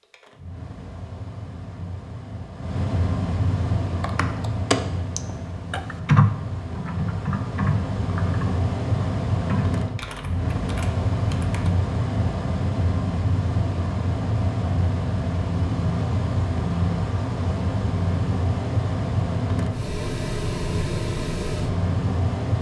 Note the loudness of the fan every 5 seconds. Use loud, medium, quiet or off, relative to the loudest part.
medium, loud, loud, loud, loud.